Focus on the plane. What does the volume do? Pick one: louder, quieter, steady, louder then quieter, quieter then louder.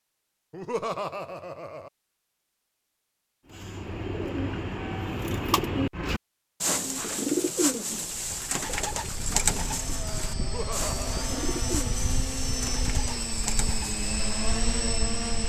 louder.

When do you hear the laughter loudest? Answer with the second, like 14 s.
1 s.